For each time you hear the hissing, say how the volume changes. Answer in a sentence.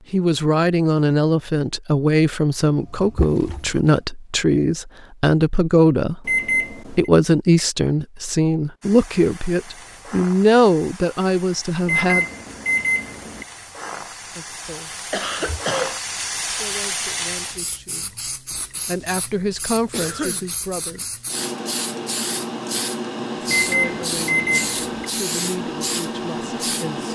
You can hear the hissing from 8.8 to 27.0 s, getting louder.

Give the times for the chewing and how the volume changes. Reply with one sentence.
You can't hear the chewing here.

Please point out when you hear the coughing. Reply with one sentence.
You can hear the coughing from 2.8 to 4.0 s, from 15.1 to 16.0 s and from 19.9 to 20.5 s.